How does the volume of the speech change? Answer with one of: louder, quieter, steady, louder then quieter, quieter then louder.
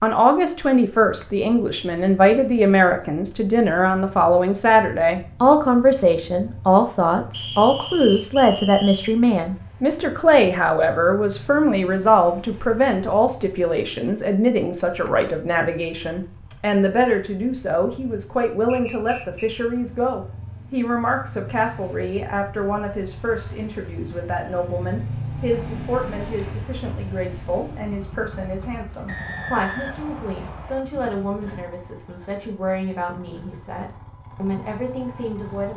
quieter.